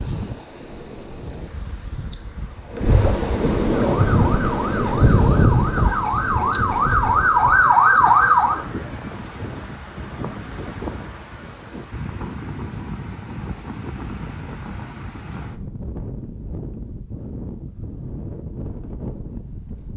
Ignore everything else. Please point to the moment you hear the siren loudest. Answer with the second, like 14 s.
8 s.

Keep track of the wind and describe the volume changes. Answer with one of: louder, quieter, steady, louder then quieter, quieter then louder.
quieter.